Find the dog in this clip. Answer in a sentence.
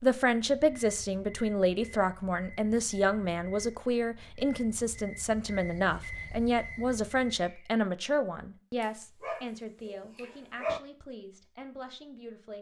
You can hear the dog from 8.8 to 10.8 s.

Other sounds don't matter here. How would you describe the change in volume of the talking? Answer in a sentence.
The volume of the talking goes down.